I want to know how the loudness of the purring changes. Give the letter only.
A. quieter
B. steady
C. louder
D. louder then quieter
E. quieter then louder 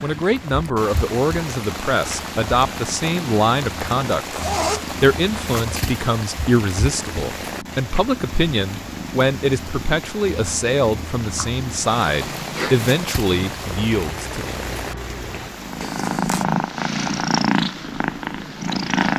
C.